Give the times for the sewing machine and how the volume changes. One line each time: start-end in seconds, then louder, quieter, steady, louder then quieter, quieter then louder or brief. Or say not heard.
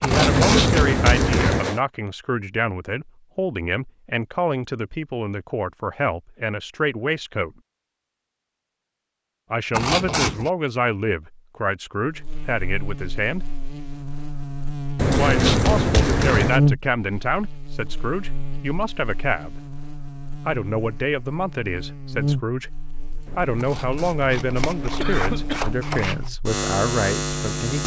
not heard.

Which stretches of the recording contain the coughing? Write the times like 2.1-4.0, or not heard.
0.1-1.8, 14.9-16.6, 23.2-25.8.